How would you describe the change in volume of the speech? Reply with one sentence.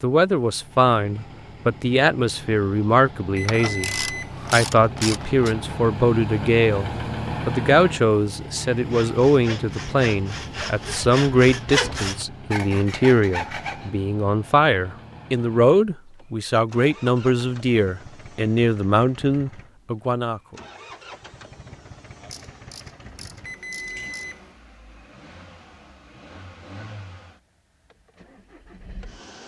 The volume of the speech stays about the same.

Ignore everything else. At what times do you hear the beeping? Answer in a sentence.
The beeping can be heard from 3.4 to 4.5 s and from 23.4 to 24.6 s.